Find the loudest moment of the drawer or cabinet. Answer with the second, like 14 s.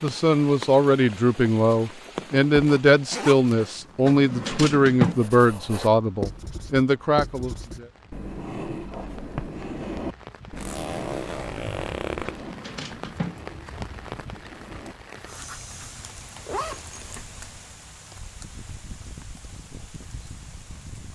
5 s.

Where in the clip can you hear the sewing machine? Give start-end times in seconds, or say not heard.
not heard.